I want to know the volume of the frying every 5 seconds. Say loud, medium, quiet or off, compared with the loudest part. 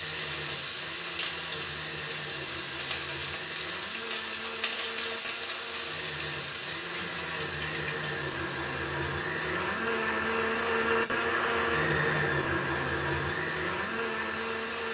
loud, loud, medium.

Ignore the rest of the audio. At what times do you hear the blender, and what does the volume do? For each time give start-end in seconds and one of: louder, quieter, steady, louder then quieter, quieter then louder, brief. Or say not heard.
0.0-14.8 louder.